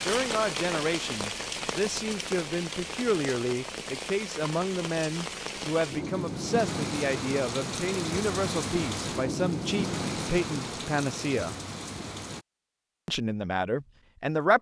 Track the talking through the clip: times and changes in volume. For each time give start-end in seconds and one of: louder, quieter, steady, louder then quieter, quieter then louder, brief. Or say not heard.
0.1-11.6 steady
13.1-14.5 brief.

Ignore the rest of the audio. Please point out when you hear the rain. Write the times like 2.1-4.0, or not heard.
0.0-12.4.